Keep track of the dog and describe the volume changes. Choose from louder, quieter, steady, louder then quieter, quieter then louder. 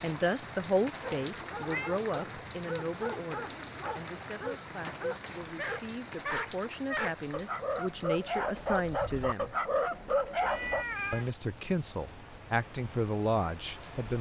louder.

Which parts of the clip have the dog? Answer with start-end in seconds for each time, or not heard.
1.4-10.8.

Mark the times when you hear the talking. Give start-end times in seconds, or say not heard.
0.0-9.6, 11.1-14.1.